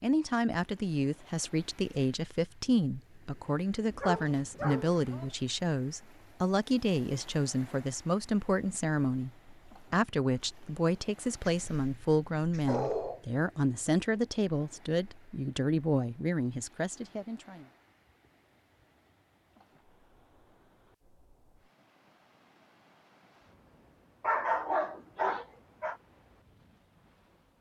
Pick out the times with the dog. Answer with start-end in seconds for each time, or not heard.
3.9-5.3, 11.4-13.2, 24.2-25.9.